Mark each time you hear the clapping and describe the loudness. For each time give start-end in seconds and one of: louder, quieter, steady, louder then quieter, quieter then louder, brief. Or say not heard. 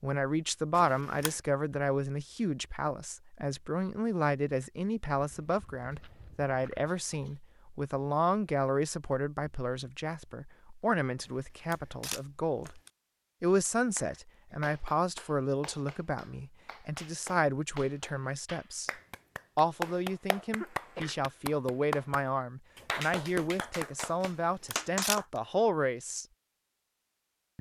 13.9-25.4 louder.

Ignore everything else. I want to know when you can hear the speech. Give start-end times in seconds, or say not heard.
0.0-12.8, 13.4-18.9, 19.6-26.2.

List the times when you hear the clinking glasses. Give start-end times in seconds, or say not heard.
not heard.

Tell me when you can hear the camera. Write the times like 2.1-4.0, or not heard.
0.8-1.4, 11.2-12.9, 24.2-25.2.